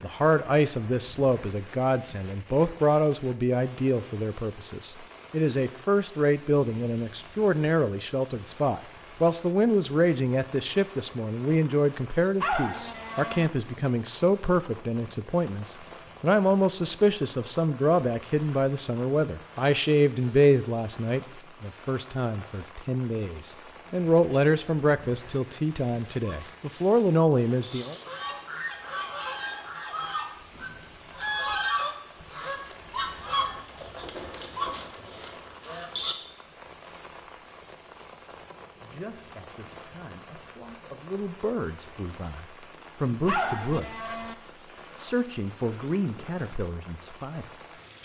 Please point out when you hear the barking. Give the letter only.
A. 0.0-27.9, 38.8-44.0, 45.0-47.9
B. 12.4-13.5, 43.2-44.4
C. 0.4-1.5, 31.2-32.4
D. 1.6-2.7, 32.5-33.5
B.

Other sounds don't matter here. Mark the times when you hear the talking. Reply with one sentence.
The talking can be heard from 0.0 to 27.9 s, from 38.8 to 44.0 s and from 45.0 to 47.9 s.